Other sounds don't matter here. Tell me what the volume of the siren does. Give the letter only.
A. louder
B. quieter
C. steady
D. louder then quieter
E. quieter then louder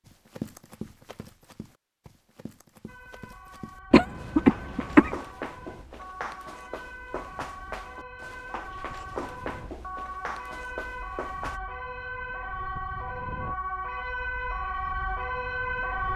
A.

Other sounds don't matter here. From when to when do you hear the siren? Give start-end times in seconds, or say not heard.
2.9-16.1.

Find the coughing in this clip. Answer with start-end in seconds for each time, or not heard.
3.9-5.2.